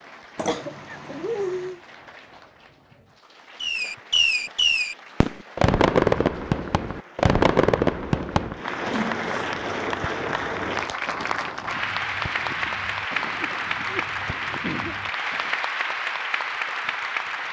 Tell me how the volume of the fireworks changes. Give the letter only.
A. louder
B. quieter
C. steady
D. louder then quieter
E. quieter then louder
B.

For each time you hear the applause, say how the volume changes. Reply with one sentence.
The applause can be heard from 0.0 to 17.4 s, getting louder.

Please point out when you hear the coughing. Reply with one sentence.
The coughing can be heard from 0.3 to 1.8 s, from 8.9 to 9.6 s and from 13.4 to 14.9 s.